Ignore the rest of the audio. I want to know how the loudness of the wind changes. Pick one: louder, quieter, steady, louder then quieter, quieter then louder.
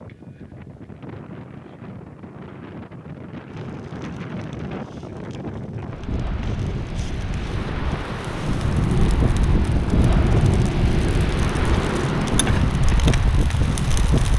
louder.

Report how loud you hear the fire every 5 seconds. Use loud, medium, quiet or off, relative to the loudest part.
quiet, loud, loud.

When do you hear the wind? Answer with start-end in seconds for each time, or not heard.
0.0-14.3.